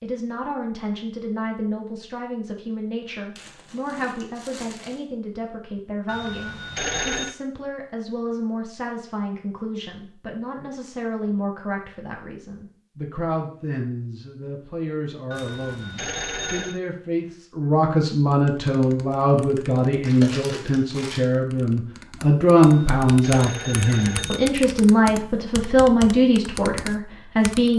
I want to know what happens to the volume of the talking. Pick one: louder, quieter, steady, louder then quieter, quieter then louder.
louder.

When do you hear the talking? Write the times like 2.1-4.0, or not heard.
0.0-27.7.